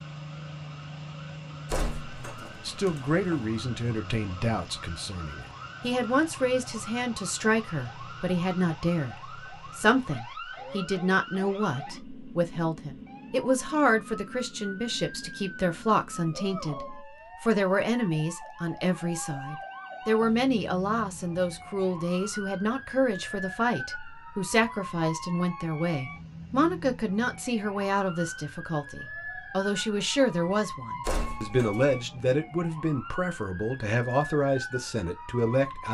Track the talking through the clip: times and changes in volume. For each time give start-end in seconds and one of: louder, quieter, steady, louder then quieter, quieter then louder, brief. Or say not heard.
2.6-35.8 steady.